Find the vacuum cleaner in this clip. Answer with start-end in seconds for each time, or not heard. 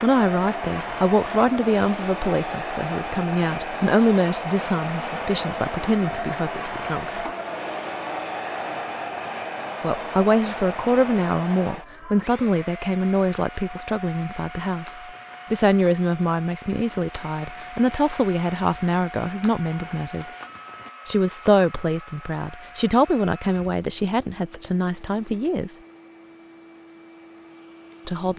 0.0-28.3.